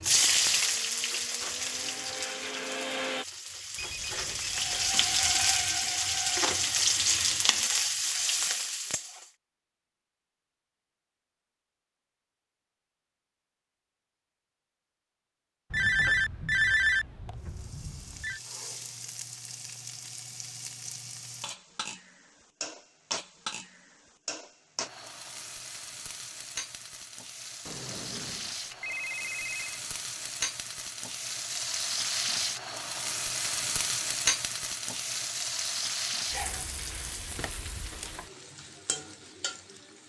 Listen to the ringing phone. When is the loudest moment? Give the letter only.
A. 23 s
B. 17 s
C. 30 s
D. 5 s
B.